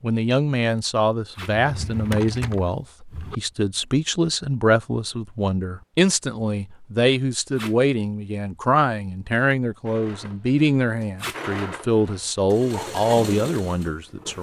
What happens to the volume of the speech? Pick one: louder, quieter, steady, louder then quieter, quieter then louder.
steady.